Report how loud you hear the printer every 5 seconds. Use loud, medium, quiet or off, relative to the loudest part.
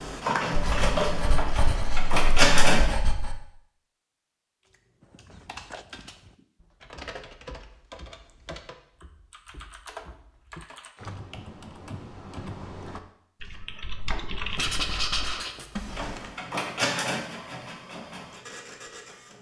loud, off, off, medium.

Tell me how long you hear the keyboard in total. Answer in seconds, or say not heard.
12 s.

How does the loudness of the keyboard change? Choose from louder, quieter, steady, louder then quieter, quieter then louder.
louder.